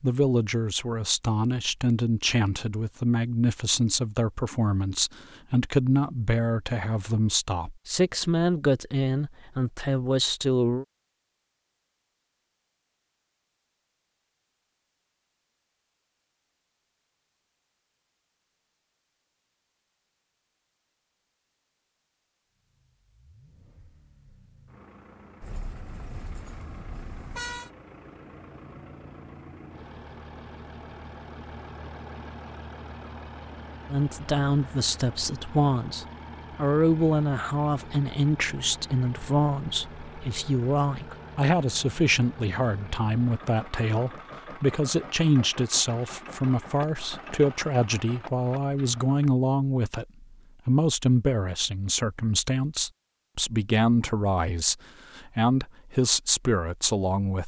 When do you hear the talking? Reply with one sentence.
The talking can be heard from 0.0 to 10.8 s and from 33.9 to 57.4 s.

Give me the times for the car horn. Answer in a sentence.
The car horn can be heard from 25.4 to 27.7 s.